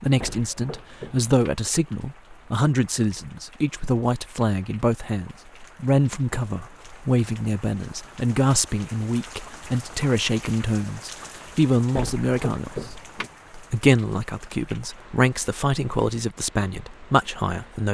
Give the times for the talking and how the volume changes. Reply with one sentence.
The talking can be heard from 0.0 to 17.8 s, at a steady volume.